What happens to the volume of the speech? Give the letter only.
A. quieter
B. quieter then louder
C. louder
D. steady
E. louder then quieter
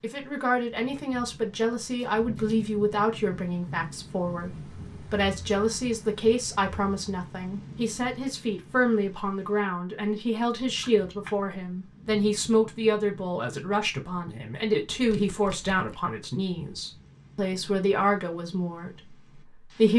D.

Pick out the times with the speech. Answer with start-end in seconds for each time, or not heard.
0.0-19.9.